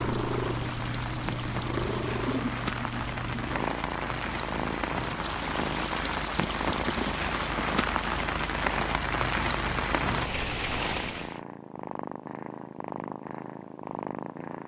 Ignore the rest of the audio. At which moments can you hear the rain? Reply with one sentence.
You can hear the rain from 0.0 to 11.4 s.